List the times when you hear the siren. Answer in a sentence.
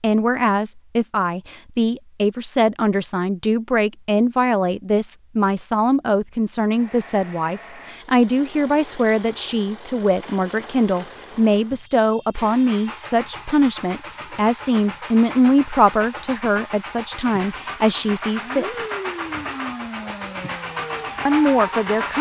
You can hear the siren from 18.4 to 22.1 s.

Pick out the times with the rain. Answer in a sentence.
You can't hear the rain here.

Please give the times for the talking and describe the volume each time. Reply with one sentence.
The talking can be heard from 0.0 to 18.6 s, at a steady volume; and briefly from 21.2 to 22.1 s.